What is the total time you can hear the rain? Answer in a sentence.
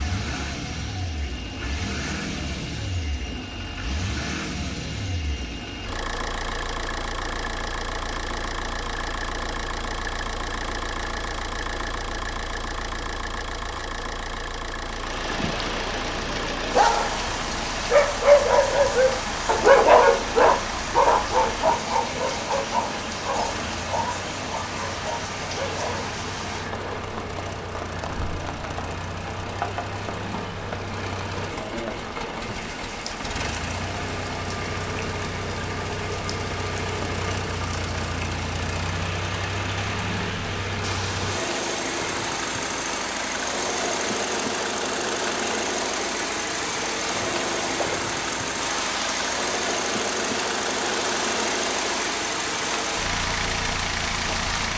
The rain can be heard for 40 seconds in total.